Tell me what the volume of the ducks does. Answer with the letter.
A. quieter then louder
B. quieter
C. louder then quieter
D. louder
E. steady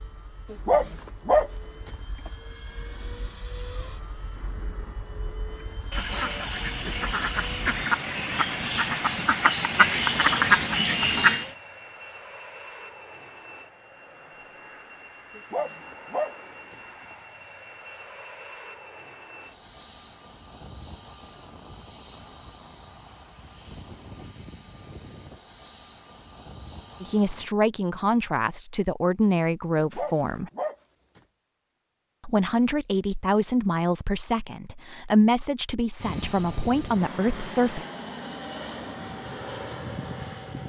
D.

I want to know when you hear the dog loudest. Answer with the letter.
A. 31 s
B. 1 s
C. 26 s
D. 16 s
B.